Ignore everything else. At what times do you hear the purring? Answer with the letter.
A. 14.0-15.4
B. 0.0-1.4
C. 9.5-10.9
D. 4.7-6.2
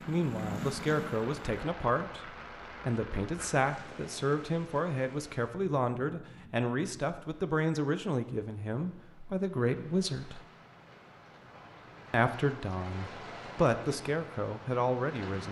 B.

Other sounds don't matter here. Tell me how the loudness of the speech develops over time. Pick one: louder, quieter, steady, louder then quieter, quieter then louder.
steady.